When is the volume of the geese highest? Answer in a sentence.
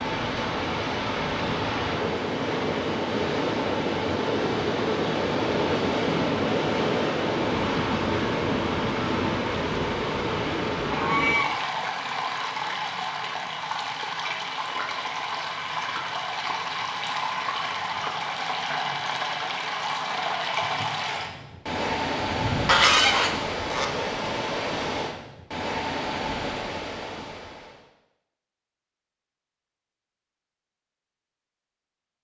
The loudest moment of the geese is at 23 seconds.